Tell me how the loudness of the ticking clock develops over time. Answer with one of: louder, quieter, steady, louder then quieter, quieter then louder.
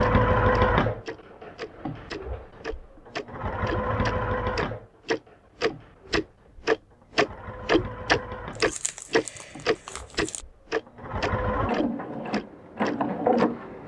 louder then quieter.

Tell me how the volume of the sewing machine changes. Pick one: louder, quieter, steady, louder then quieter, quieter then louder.
quieter then louder.